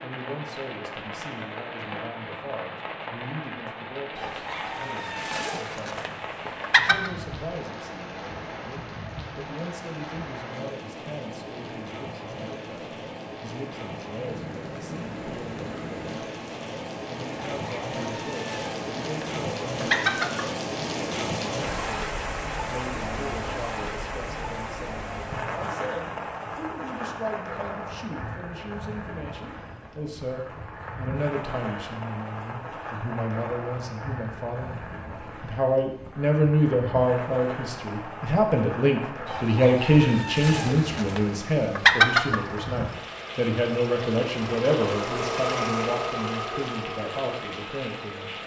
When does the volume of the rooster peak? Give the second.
42 s.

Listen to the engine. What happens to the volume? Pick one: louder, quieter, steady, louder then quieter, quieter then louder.
louder then quieter.